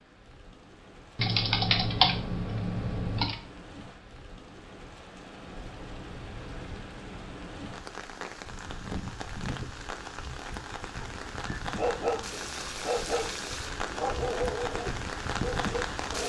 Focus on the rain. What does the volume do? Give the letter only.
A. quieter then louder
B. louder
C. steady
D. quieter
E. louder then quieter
B.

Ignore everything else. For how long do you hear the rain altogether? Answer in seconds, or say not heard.
16 s.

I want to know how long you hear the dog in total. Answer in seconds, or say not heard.
5 s.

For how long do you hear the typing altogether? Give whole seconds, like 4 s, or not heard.
2 s.